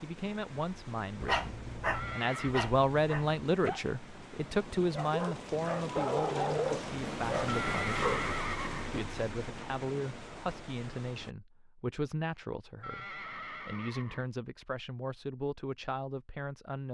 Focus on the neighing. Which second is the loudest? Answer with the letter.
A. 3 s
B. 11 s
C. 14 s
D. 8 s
D.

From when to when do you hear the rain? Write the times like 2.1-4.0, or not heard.
0.0-11.3.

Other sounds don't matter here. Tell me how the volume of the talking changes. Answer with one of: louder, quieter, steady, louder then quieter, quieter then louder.
quieter.